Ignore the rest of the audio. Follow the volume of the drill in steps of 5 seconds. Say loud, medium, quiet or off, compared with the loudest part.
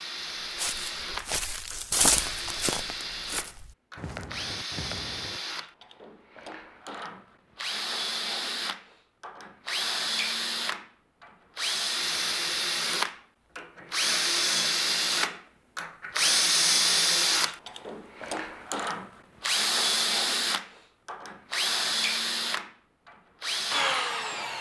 medium, medium, loud, loud, loud.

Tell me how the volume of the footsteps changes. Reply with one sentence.
The volume of the footsteps goes up, then down.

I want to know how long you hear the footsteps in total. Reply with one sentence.
The footsteps can be heard for 5 seconds in total.